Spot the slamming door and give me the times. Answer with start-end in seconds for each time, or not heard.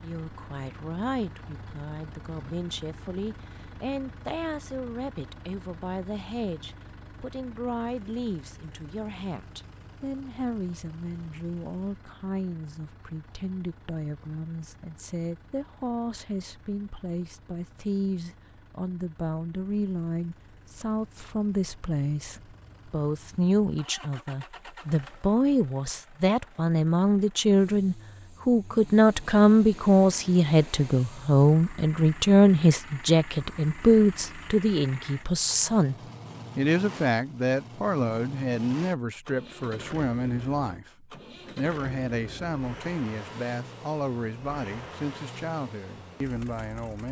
not heard.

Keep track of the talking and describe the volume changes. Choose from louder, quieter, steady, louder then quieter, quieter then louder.
louder then quieter.